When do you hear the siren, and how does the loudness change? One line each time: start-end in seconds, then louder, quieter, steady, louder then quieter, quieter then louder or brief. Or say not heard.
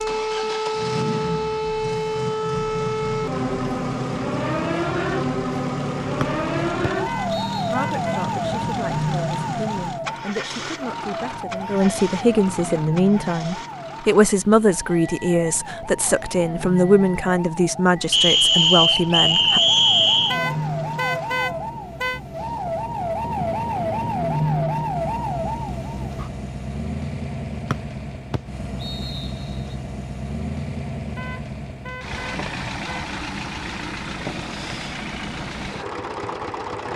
0.0-26.3 quieter then louder.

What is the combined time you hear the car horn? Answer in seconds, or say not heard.
5 s.